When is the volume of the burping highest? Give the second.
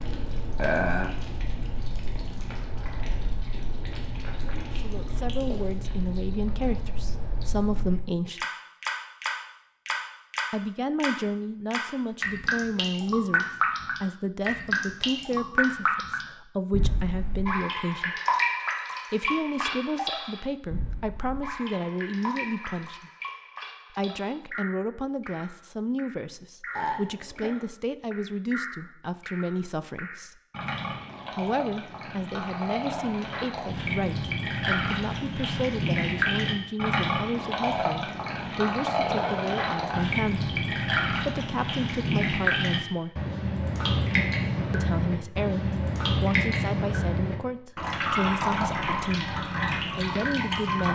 1 s.